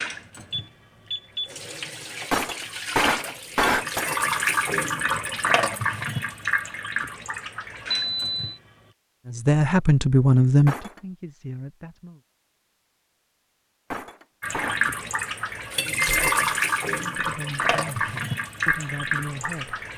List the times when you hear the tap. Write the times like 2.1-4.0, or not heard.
0.0-8.9, 14.4-19.9.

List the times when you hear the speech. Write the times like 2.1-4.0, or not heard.
9.2-12.2, 17.1-19.8.